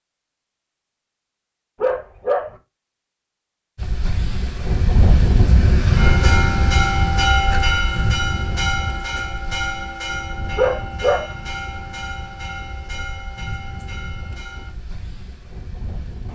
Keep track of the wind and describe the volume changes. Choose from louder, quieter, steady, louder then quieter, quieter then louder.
quieter.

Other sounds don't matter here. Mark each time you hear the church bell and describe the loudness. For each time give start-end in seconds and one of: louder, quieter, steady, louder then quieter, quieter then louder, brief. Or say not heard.
6.0-14.8 quieter.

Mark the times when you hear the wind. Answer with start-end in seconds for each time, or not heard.
3.8-16.3.